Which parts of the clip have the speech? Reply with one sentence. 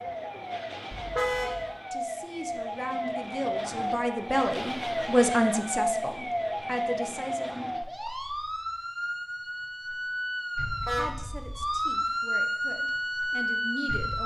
You can hear the speech from 1.9 to 7.7 s and from 10.8 to 14.2 s.